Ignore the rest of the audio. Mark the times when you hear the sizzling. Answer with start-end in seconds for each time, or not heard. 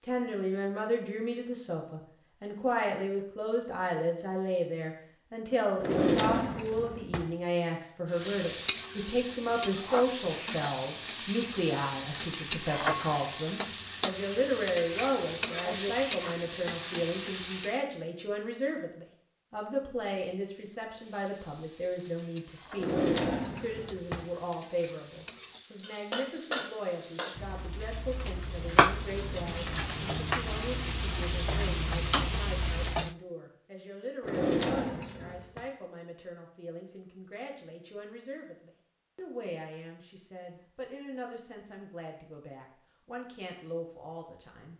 8.1-17.8, 20.9-33.1.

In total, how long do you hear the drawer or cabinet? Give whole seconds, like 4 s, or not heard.
4 s.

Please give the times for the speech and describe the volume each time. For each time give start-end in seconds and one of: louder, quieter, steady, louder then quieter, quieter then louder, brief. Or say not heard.
0.0-44.7 quieter.